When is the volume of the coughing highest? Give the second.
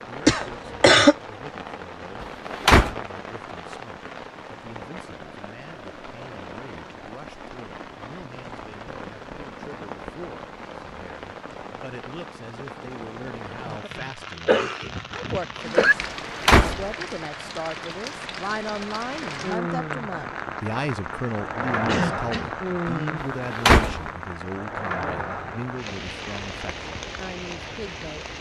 1 s.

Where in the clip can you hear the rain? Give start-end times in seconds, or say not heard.
0.0-28.3.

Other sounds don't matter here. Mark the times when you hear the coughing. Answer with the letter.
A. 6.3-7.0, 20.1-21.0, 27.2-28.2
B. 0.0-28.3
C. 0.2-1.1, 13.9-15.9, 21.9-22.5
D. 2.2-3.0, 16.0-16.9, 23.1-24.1
C.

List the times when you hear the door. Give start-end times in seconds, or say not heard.
2.2-3.0, 16.0-16.9, 23.1-24.1.